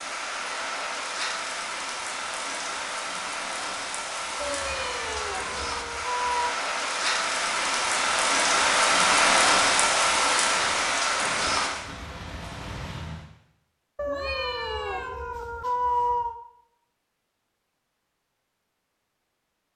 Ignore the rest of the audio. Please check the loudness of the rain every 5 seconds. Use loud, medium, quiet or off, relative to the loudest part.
medium, loud, loud, off.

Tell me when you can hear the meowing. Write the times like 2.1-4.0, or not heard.
4.4-6.5, 13.9-16.4.